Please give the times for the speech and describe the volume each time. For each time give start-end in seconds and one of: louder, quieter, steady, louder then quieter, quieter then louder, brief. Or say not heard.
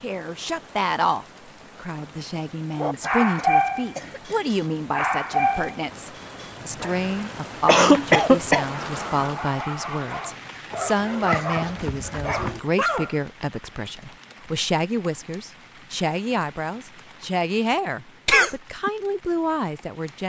0.0-20.2 steady.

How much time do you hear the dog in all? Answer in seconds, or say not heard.
10 s.